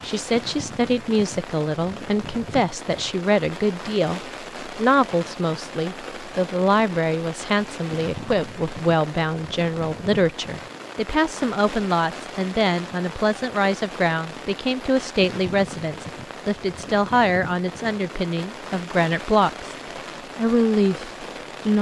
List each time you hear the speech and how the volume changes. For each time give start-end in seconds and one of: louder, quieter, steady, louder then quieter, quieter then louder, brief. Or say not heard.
0.0-19.8 steady
20.4-21.7 brief.